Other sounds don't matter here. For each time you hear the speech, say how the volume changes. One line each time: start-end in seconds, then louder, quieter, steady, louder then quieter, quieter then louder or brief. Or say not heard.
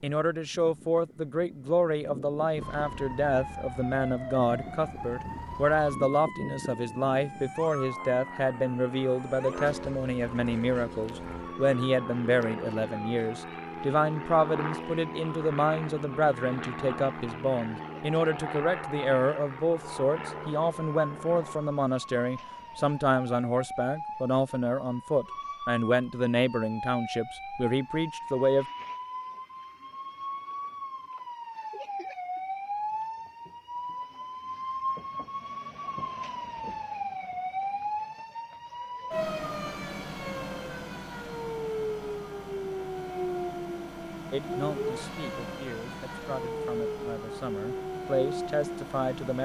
0.0-28.6 steady
44.3-49.4 louder.